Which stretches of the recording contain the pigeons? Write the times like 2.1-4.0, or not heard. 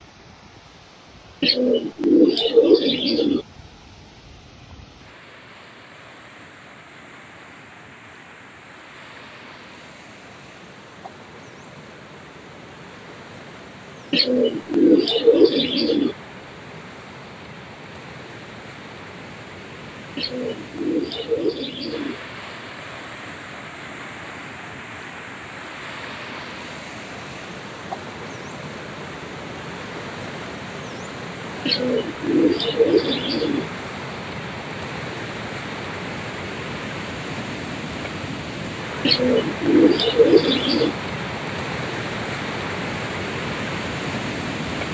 1.4-3.5, 14.1-16.1, 20.1-22.1, 31.6-33.6, 39.0-41.0.